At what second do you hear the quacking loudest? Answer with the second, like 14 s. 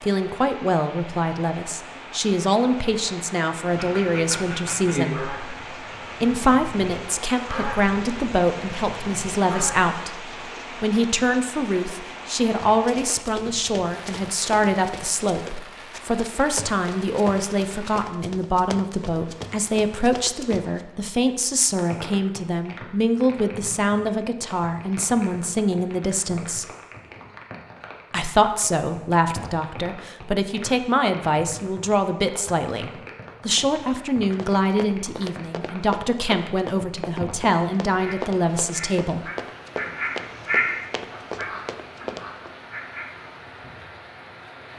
41 s.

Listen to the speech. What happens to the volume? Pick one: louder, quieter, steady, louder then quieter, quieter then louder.
steady.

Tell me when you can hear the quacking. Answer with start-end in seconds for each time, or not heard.
3.7-9.9, 38.0-43.9.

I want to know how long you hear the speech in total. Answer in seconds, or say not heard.
37 s.